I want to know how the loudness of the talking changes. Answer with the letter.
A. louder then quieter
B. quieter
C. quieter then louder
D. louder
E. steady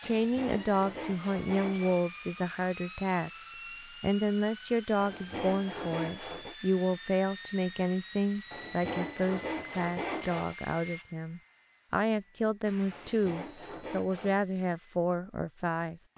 E.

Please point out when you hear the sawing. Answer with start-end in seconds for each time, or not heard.
0.0-2.0, 5.0-6.5, 8.5-10.6, 12.9-14.4.